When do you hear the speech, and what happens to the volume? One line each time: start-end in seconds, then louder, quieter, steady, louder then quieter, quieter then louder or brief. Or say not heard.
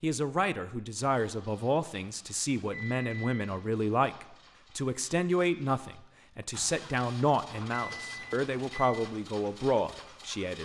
0.0-10.5 steady.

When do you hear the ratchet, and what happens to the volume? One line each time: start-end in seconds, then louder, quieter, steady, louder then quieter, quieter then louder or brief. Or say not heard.
not heard.